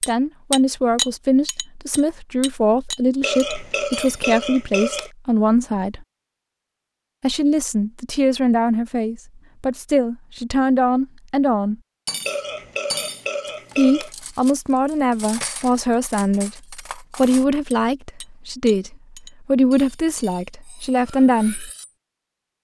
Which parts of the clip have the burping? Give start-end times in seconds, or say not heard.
3.2-5.1, 12.2-14.1.